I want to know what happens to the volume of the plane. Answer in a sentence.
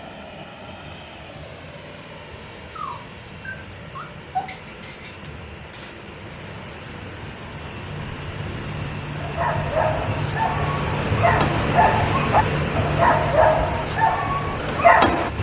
The volume of the plane goes up.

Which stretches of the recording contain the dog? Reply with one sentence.
You can hear the dog from 2.8 to 6.0 s and from 9.2 to 15.3 s.